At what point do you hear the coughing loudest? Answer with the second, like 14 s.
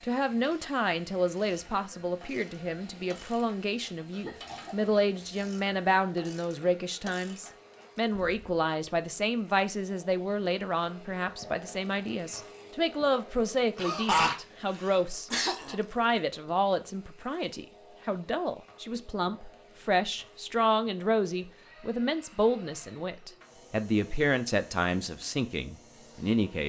14 s.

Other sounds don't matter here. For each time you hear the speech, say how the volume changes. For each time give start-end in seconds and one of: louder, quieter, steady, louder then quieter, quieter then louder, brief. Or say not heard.
0.0-26.6 steady.